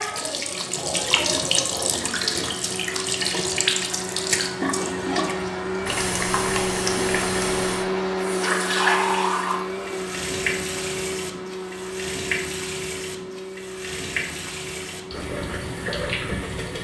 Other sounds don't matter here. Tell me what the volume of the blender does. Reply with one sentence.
The loudness of the blender goes up, then down.